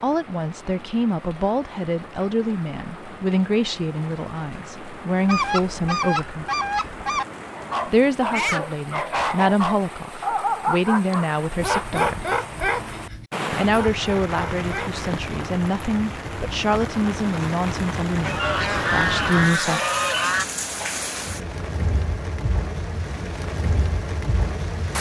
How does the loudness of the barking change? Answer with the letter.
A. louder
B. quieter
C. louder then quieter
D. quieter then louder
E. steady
B.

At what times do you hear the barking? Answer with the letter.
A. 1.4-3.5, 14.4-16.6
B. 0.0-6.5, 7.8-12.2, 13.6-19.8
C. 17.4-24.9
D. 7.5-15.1
D.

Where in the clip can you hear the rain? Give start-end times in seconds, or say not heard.
0.0-24.9.